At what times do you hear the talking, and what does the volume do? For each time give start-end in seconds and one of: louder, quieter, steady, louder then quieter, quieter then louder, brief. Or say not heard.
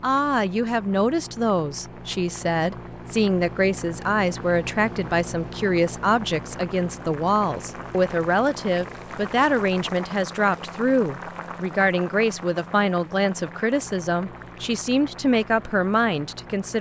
0.0-16.7 steady.